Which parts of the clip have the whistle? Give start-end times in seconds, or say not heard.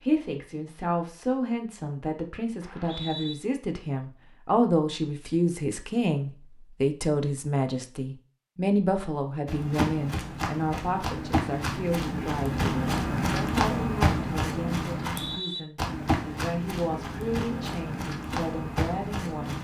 2.6-3.4, 15.0-15.7.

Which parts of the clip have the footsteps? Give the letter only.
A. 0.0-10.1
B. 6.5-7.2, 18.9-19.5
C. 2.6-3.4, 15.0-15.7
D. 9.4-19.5
D.